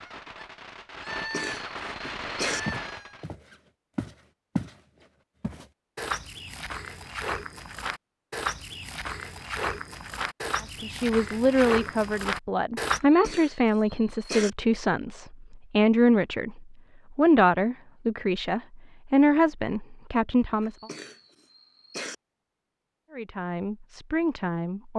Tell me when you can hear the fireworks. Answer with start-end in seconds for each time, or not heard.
0.0-3.3.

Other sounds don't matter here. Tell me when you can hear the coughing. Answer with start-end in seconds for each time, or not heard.
1.2-2.6, 12.9-14.5, 20.6-22.1.